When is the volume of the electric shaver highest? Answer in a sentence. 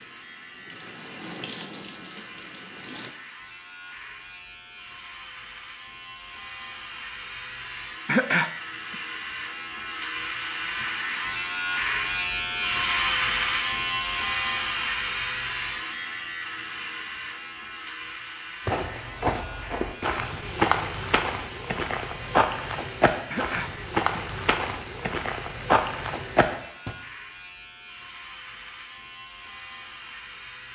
The volume of the electric shaver peaks at 13 seconds.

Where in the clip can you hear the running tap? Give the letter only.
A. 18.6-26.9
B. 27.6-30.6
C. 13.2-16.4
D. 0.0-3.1
D.